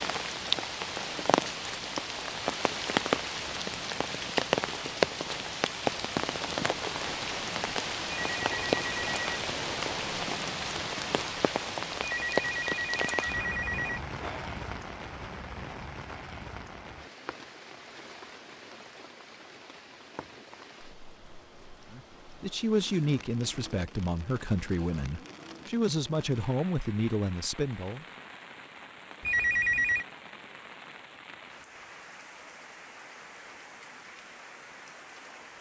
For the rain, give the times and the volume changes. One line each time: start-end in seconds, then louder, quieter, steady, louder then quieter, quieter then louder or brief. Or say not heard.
0.0-35.5 quieter.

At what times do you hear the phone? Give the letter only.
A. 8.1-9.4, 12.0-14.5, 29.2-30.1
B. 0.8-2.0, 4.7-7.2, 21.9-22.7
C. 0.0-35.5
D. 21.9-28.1
A.